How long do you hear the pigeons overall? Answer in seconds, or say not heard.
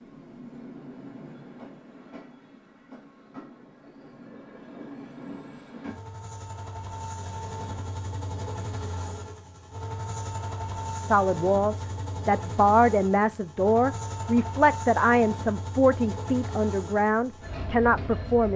not heard.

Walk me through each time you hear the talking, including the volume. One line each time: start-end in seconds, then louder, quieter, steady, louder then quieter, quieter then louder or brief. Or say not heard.
10.9-18.5 steady.